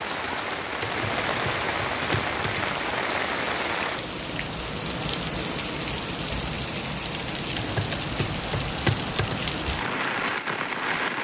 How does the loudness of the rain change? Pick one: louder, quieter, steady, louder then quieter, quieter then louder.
steady.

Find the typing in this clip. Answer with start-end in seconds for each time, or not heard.
0.8-2.8, 7.5-9.6.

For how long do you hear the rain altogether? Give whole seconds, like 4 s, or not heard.
11 s.